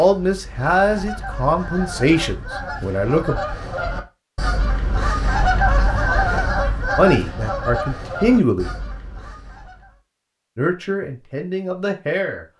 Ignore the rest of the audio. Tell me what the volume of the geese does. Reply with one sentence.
The volume of the geese goes up, then down.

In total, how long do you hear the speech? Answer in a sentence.
You can hear the speech for 7 seconds altogether.